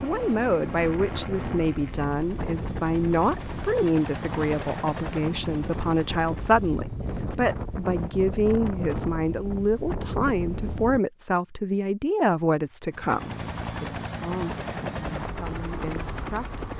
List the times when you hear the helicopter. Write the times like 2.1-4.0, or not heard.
0.0-6.7, 12.8-16.7.